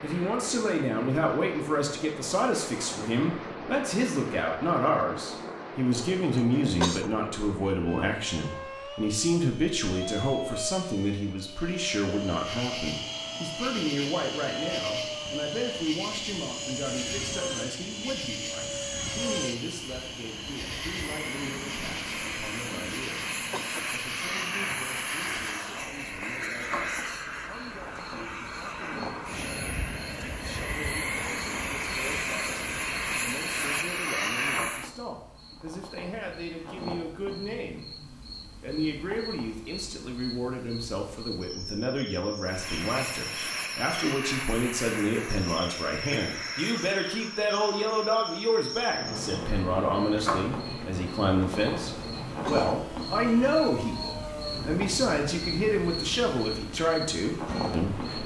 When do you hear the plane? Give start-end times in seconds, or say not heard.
0.0-34.9, 42.5-58.2.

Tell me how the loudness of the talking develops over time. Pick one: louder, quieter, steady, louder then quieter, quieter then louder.
quieter then louder.